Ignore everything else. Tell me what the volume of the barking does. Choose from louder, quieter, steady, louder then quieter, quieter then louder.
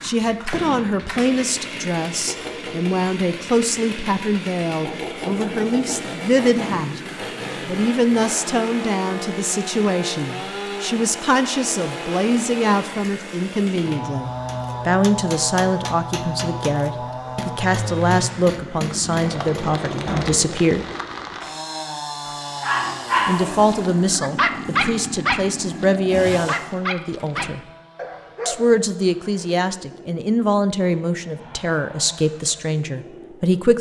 quieter.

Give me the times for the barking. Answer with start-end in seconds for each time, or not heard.
22.6-28.8.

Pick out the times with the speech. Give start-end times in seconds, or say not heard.
0.0-7.0, 7.7-20.9, 23.2-27.6, 28.4-33.7.